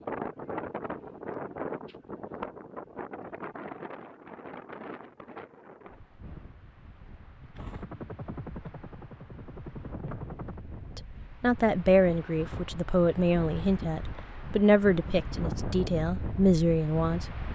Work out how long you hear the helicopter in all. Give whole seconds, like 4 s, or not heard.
3 s.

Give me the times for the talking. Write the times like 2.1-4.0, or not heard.
10.9-17.2.